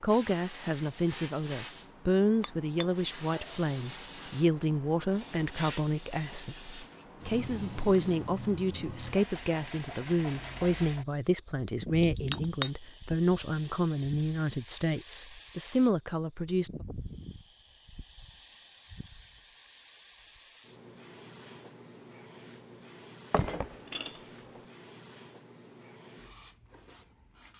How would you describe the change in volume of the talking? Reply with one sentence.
The loudness of the talking stays about the same.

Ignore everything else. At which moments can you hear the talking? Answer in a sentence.
You can hear the talking from 0.0 to 16.9 s.